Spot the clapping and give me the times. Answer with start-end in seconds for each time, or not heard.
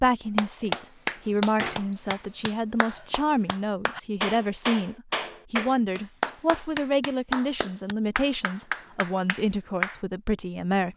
0.3-10.0.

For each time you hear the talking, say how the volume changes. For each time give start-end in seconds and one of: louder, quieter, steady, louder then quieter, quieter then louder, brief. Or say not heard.
0.0-10.9 steady.